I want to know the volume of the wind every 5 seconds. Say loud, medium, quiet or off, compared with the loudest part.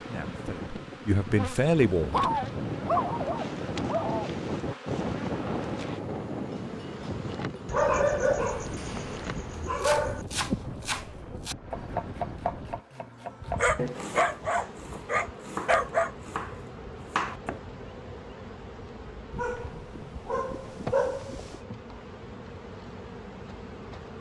loud, loud, medium, off, off.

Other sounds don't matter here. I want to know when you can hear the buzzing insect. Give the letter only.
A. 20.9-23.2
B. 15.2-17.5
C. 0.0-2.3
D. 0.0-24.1
D.